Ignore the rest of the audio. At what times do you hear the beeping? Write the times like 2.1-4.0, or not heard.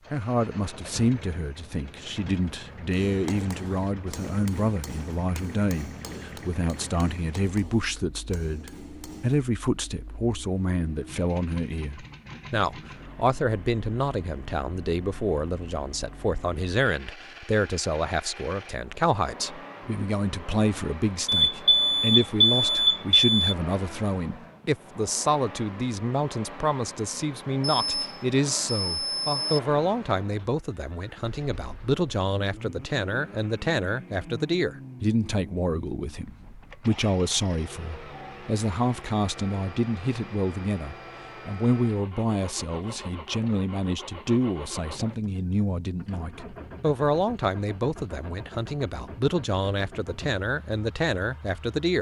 21.2-23.6, 27.8-29.6.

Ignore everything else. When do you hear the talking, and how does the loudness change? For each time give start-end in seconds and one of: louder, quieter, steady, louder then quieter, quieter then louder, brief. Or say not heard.
0.1-51.9 steady.